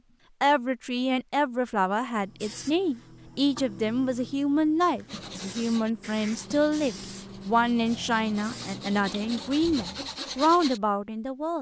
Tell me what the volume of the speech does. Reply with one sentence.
The volume of the speech stays about the same.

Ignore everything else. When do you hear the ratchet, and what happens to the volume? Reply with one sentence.
The ratchet can't be heard in this clip.